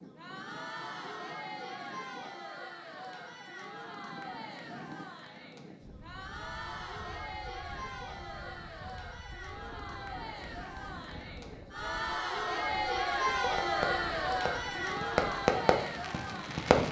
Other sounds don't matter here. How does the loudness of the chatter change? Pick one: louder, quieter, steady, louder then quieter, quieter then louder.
louder.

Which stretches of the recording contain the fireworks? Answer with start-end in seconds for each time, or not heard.
13.4-16.8.